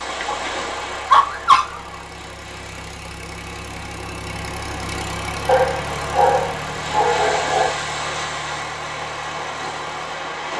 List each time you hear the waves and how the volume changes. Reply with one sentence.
You can hear the waves from 0.0 to 10.5 s, getting quieter then louder.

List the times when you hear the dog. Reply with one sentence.
You can hear the dog from 0.2 to 2.0 s and from 5.5 to 7.8 s.